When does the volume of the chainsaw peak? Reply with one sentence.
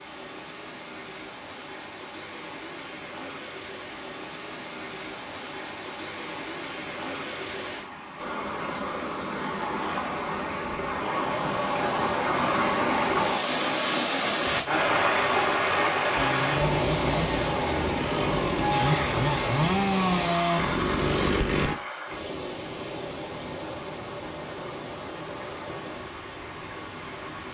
The loudest moment of the chainsaw is at 20 seconds.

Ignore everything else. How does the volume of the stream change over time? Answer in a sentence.
The volume of the stream goes up, then down.